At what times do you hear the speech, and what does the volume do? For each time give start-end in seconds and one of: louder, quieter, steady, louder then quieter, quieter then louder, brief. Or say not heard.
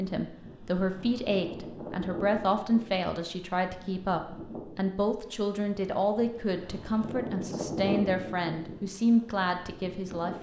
0.0-10.3 steady.